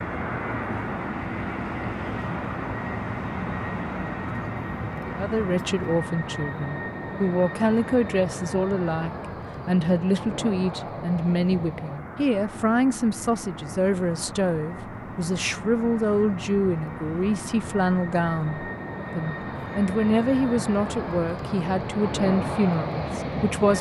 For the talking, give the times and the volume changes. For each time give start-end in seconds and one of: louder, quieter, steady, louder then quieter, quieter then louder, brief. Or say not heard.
5.0-23.7 steady.